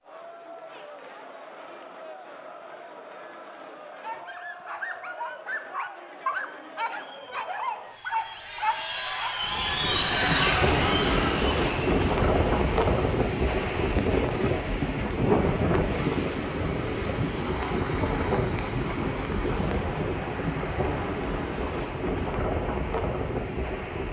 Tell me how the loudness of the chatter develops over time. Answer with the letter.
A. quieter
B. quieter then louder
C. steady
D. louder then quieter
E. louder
E.